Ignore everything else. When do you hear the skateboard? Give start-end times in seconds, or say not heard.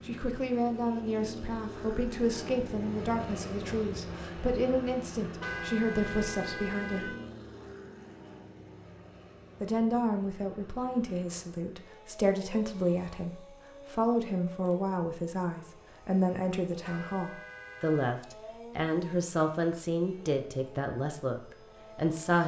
not heard.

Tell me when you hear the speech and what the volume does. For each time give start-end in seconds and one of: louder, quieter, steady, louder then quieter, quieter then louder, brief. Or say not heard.
0.1-7.2 steady
9.6-22.4 steady.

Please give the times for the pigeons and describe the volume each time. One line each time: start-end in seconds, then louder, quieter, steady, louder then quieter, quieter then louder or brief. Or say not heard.
not heard.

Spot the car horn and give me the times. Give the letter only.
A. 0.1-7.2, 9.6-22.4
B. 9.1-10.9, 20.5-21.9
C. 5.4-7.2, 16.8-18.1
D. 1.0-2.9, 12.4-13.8
C.